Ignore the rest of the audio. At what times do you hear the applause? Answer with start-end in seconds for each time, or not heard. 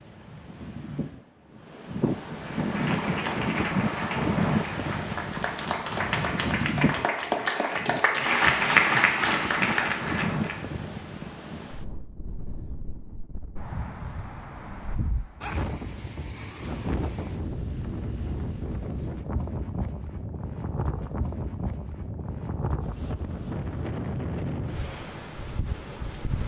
2.4-10.8.